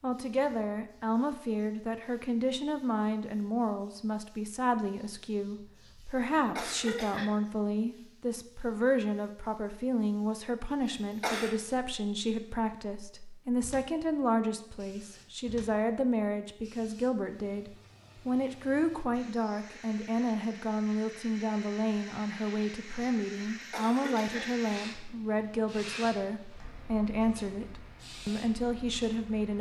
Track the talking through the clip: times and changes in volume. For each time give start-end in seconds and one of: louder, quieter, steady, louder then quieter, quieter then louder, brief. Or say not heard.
0.0-29.5 steady.